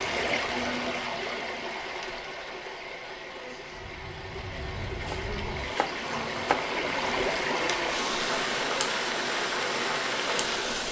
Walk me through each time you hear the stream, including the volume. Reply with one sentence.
You can hear the stream from 0.0 to 10.8 s, getting quieter then louder.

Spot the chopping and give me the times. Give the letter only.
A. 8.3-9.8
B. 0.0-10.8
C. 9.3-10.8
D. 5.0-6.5
D.